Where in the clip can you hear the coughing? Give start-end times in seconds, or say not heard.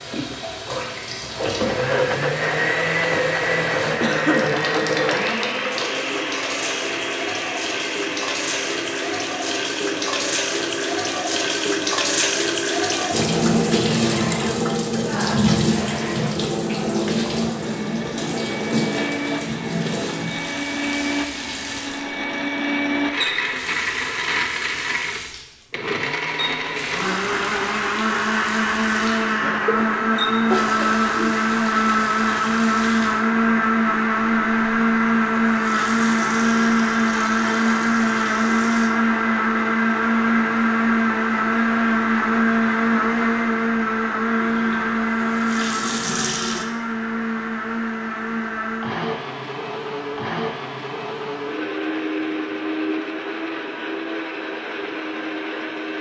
4.0-4.5, 29.4-31.4.